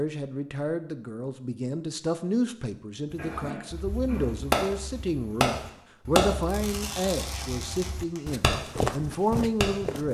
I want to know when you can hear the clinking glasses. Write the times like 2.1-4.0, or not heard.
not heard.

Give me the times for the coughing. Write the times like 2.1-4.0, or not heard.
3.1-4.3.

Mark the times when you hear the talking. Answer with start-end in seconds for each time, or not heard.
0.0-10.0.